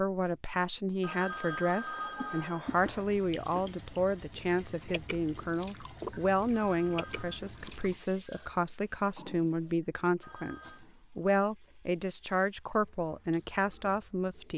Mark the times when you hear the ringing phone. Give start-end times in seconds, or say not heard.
1.0-3.0, 6.7-7.4, 10.2-10.8.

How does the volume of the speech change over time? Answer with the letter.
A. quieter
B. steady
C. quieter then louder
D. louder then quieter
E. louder
B.